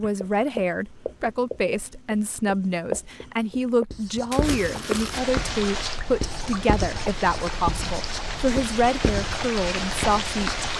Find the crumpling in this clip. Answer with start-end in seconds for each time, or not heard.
4.3-5.2.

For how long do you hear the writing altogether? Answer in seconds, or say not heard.
11 s.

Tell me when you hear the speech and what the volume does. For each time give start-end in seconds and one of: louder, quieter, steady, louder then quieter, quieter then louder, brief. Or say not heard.
0.0-10.7 steady.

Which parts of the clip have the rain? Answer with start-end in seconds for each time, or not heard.
5.1-10.7.